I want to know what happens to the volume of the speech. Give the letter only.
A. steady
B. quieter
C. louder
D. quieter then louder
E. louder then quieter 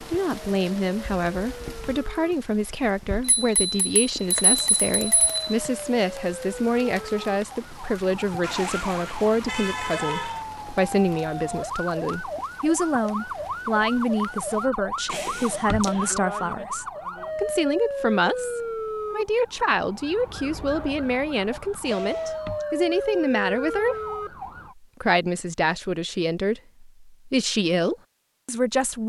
A.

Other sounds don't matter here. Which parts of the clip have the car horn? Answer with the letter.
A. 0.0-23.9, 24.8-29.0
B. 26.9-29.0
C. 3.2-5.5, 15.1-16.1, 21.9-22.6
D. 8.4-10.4
D.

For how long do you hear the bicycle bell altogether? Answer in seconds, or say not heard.
4 s.